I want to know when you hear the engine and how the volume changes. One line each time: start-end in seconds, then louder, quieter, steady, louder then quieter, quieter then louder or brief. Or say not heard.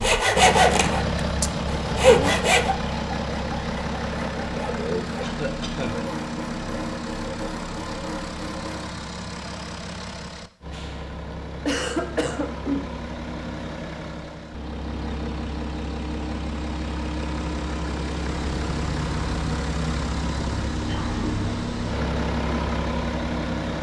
0.0-23.7 quieter then louder.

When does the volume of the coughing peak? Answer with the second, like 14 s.
12 s.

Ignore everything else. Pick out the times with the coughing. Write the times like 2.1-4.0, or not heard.
5.2-6.0, 11.3-12.9, 20.9-21.5.